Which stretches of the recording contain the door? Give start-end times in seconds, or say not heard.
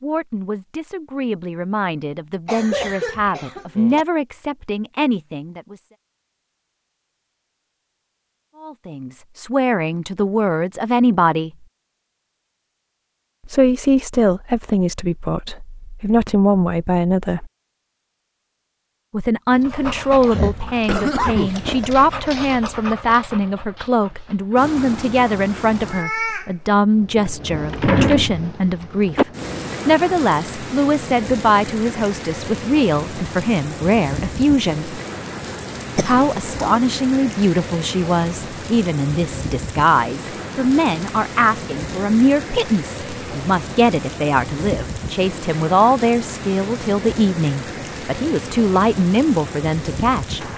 27.2-29.2.